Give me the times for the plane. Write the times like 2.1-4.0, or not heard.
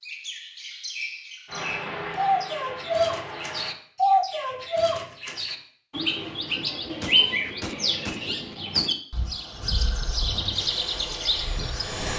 1.4-3.8, 10.5-12.1.